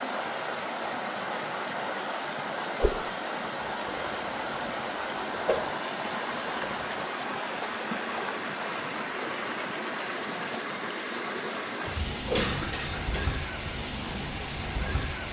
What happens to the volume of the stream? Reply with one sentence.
The loudness of the stream stays about the same.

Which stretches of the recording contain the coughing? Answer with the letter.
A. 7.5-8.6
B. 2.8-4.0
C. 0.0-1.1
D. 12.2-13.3
D.